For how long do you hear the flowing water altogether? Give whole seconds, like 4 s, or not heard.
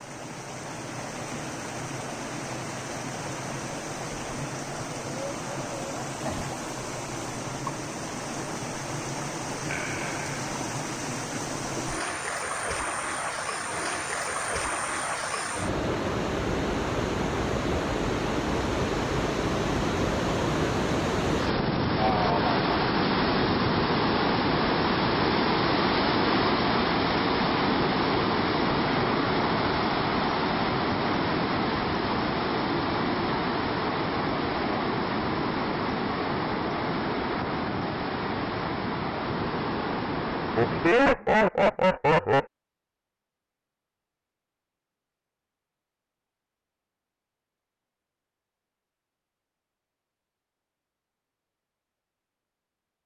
41 s.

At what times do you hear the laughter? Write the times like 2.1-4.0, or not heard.
9.7-10.4, 21.9-22.6, 40.5-42.5.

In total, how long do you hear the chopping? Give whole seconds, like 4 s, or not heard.
not heard.